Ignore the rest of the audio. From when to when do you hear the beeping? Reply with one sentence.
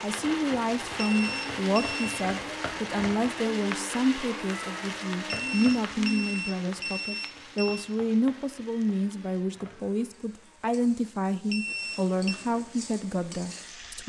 The beeping can be heard from 0.9 to 2.2 s, from 5.2 to 7.9 s and from 11.5 to 12.4 s.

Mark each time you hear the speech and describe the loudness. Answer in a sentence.
You can hear the speech from 0.0 to 14.0 s, at a steady volume.